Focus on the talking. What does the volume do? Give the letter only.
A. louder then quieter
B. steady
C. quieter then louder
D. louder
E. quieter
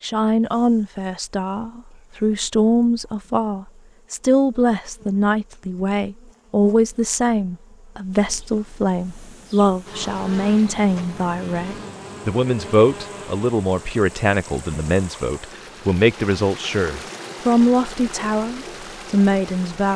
B.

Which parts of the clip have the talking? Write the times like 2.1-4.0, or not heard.
0.0-19.9.